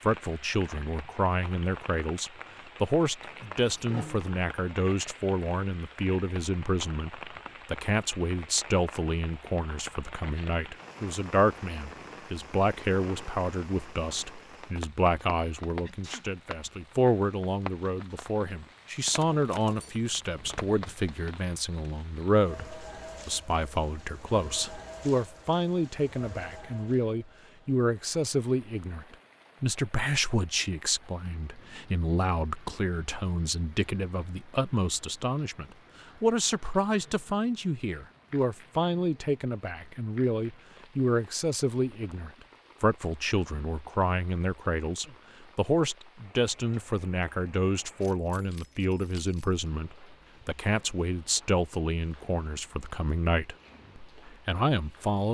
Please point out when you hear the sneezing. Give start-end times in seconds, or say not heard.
15.2-16.7.